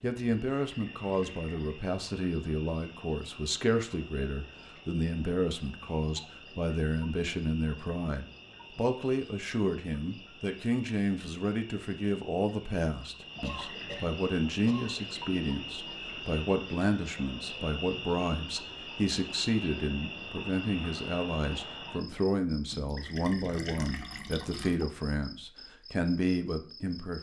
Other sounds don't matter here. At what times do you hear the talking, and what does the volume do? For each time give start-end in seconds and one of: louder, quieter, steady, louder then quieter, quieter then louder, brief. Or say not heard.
0.0-27.1 steady.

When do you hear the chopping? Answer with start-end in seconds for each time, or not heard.
not heard.